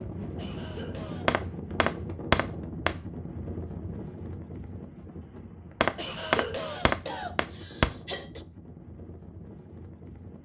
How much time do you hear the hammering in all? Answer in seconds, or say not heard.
4 s.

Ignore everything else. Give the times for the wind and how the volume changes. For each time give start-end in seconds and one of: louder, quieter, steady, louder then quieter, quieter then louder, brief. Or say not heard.
0.0-10.3 quieter.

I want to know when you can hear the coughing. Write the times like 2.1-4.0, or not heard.
0.3-1.3, 6.0-8.4.